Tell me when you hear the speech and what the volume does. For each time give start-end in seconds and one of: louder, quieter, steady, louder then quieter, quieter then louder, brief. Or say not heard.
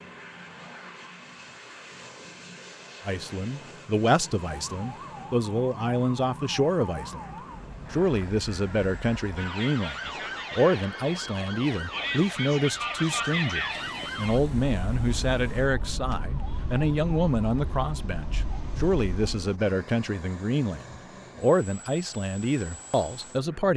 3.0-23.7 steady.